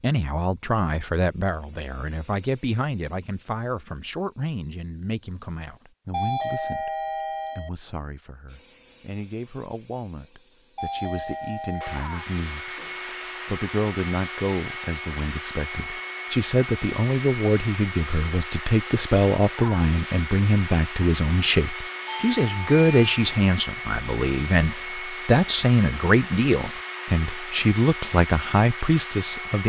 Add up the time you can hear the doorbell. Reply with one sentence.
The doorbell can be heard for 4 seconds in total.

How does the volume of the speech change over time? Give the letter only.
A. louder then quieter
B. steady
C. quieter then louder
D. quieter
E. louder
C.